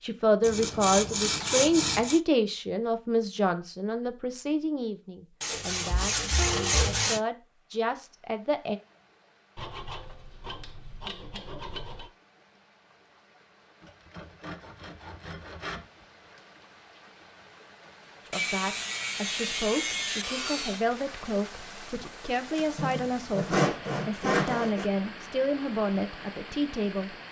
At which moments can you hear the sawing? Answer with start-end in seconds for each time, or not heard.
0.4-2.2, 5.4-7.2, 9.6-12.1, 13.8-16.4, 18.3-20.9, 22.8-24.9.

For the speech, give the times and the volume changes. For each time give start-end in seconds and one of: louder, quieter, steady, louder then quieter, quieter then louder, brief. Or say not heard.
0.0-8.8 quieter then louder
18.2-27.1 steady.